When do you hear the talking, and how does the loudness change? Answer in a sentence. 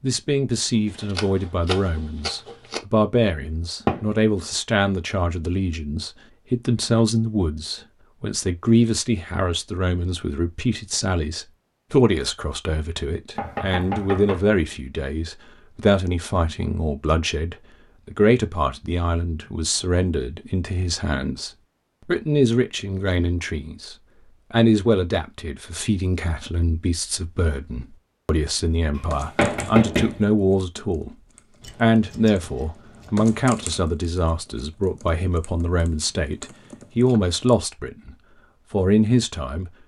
The talking can be heard from 0.0 to 39.8 s, at a steady volume.